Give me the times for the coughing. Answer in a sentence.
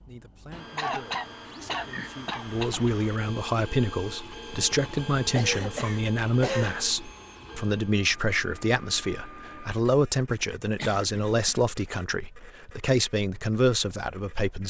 You can hear the coughing from 0.8 to 2.9 s, from 5.3 to 6.8 s and from 10.8 to 11.6 s.